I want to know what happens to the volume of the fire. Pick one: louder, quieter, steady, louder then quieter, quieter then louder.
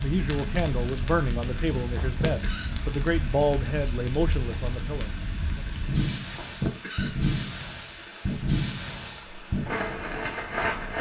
louder.